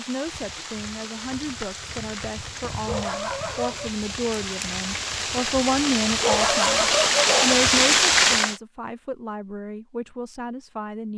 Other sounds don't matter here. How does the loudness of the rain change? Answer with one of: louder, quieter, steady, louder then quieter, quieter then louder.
louder.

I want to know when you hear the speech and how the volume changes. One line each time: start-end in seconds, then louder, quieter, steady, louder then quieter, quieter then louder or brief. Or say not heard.
0.0-11.1 louder then quieter.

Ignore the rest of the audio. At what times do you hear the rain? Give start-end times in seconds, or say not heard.
0.0-8.6.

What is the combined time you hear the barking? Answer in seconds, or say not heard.
3 s.